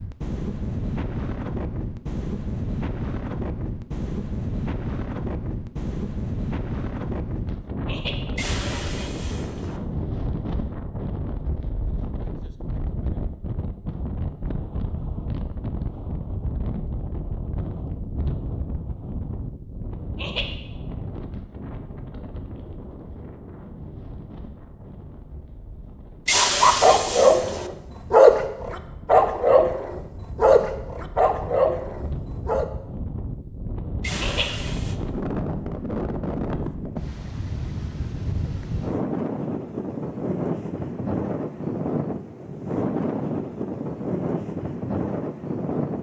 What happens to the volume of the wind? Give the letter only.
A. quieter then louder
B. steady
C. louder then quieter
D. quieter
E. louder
A.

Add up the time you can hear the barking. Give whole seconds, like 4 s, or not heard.
6 s.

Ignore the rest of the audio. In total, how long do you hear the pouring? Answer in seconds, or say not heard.
4 s.